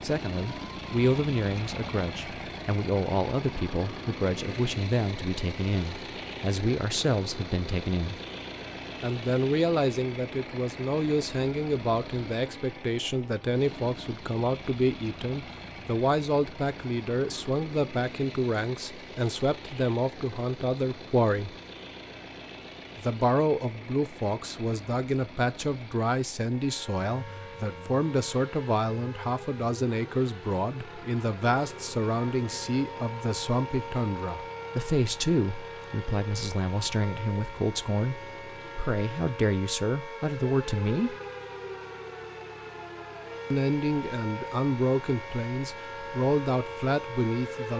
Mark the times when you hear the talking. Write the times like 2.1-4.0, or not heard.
0.0-8.2, 9.0-21.6, 22.9-41.1, 43.5-47.7.